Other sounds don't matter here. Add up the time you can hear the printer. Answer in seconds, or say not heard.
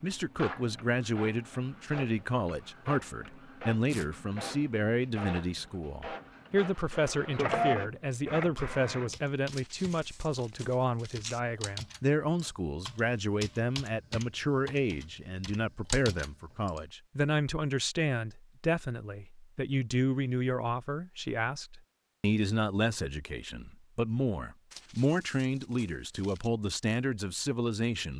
9 s.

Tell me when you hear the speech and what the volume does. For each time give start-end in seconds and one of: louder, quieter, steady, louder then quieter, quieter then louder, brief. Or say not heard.
0.0-28.1 steady.